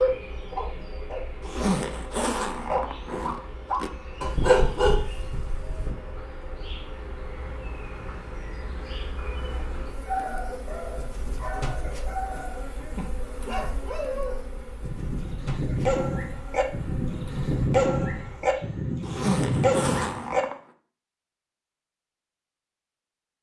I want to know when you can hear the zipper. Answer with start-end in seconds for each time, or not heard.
1.4-3.9, 19.1-20.6.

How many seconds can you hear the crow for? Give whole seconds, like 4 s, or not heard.
not heard.